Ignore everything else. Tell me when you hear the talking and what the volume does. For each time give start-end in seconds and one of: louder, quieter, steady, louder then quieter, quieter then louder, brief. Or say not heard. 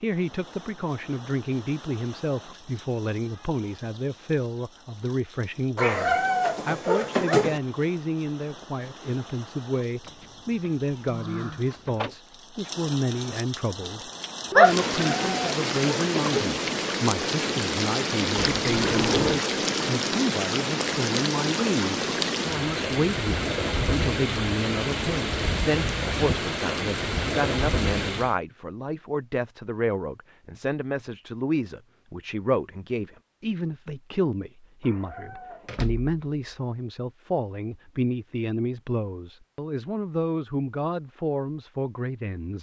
0.0-42.5 steady.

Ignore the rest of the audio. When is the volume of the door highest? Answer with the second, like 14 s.
19 s.